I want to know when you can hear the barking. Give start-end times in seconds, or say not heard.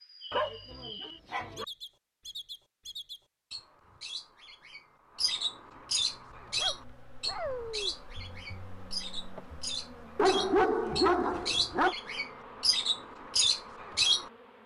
0.3-1.6, 6.5-8.0, 10.2-11.9.